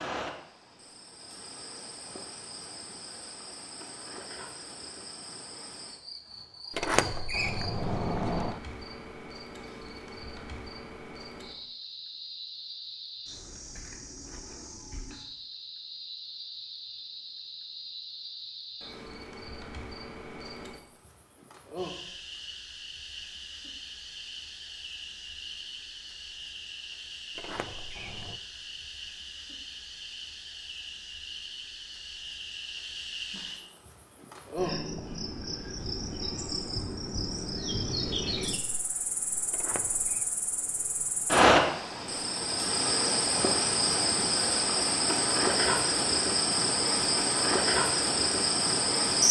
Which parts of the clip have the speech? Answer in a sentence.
You can't hear the speech here.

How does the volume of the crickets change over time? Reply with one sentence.
The loudness of the crickets goes up.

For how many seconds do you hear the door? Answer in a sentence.
The door can be heard for 4 seconds in total.